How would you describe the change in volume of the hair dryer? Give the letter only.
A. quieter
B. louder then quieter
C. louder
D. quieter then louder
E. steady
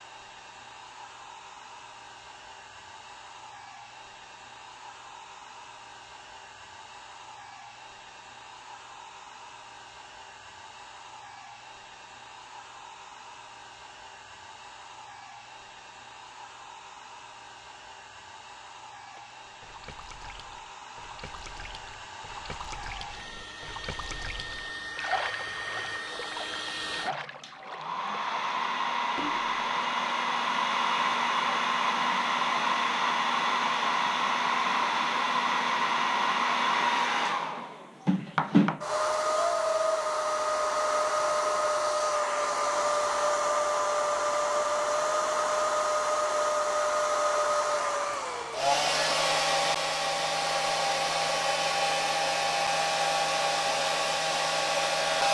C.